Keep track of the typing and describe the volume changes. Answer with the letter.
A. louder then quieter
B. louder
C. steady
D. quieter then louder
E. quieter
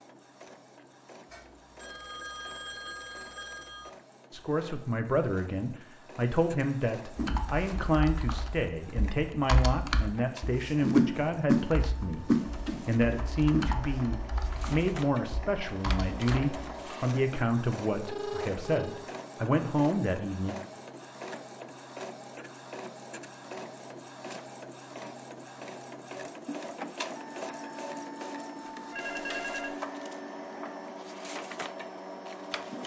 A.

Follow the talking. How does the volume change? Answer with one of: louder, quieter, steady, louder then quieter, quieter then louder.
steady.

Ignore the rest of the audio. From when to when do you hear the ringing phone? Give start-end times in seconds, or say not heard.
1.3-3.9, 18.0-19.1, 28.9-29.8.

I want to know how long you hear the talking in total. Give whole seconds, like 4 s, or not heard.
16 s.